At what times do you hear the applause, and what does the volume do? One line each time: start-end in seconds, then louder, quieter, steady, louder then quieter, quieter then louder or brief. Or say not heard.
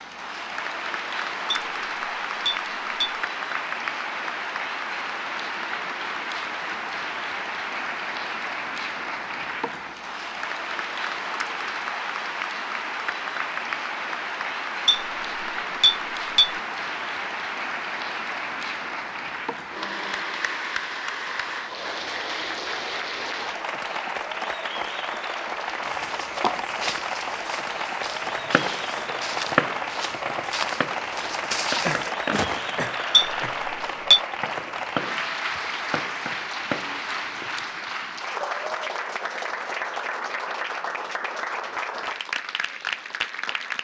0.0-43.7 steady.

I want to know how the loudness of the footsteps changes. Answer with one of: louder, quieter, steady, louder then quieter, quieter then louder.
quieter then louder.